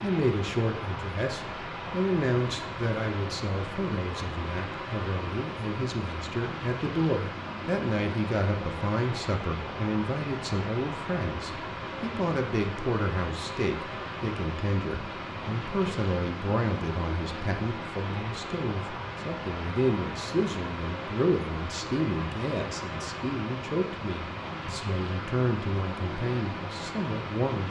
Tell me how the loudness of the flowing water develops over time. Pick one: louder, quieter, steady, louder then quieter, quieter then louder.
steady.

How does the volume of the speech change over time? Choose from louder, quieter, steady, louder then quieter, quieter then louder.
steady.